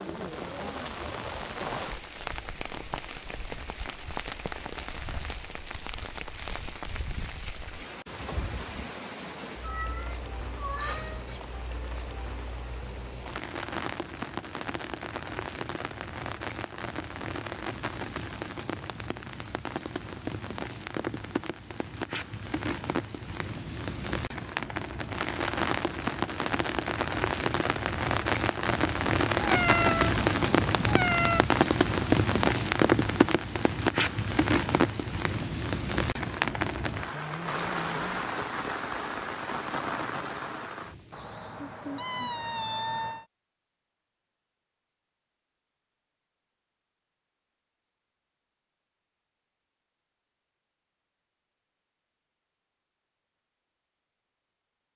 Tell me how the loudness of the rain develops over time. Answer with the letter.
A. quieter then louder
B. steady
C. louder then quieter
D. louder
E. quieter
D.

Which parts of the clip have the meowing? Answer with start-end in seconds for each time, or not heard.
9.6-11.4, 29.4-31.4, 41.1-43.2.